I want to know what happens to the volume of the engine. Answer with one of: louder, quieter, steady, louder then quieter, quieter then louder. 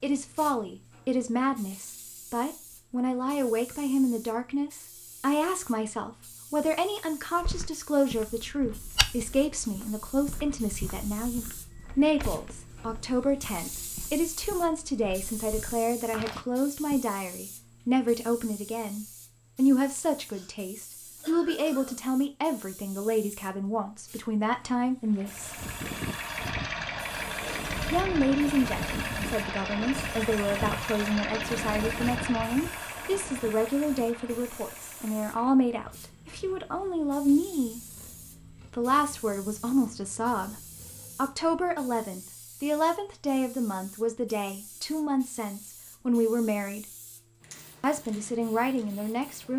quieter.